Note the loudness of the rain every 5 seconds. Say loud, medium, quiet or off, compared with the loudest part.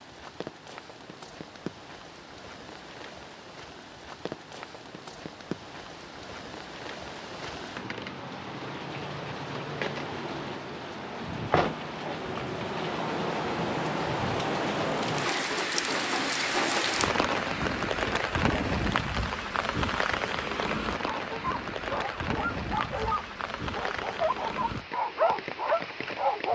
quiet, medium, loud, loud, medium, medium.